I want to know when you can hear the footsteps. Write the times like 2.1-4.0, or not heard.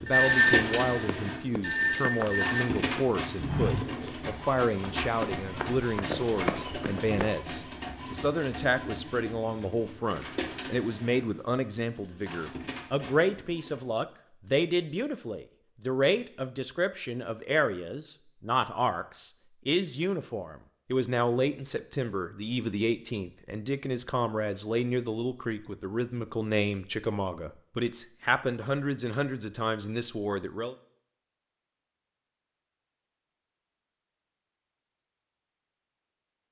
2.0-7.3.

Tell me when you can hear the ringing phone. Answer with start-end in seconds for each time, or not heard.
0.1-2.7.